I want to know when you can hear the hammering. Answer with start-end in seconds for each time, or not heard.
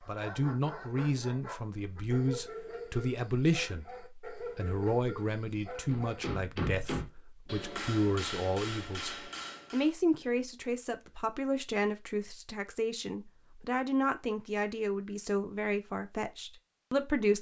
5.8-9.9.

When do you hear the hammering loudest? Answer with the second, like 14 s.
7 s.